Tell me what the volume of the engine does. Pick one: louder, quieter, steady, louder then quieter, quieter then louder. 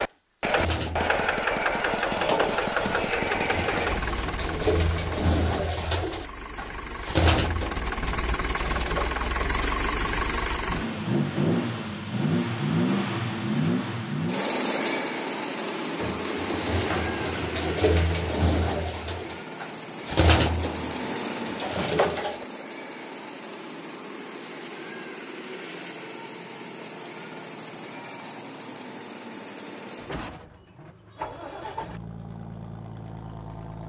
quieter.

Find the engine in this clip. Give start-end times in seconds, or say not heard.
0.0-33.8.